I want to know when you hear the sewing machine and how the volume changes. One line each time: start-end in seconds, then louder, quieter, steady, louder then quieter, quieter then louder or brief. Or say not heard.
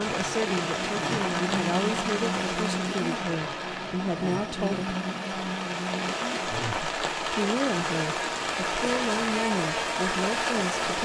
not heard.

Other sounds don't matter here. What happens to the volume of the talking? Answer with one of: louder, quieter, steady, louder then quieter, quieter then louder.
steady.